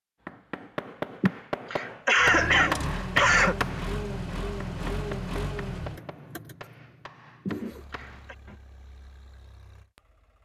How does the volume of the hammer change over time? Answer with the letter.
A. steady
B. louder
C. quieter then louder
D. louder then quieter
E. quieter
E.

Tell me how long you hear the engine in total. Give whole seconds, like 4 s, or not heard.
8 s.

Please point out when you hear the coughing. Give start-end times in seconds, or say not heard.
1.2-3.5, 7.5-8.3.